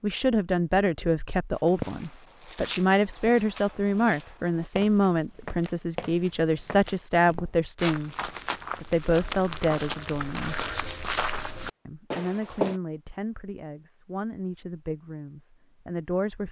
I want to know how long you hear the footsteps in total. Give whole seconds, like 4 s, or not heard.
11 s.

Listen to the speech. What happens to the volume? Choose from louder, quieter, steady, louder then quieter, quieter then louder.
quieter.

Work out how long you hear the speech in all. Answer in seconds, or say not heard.
15 s.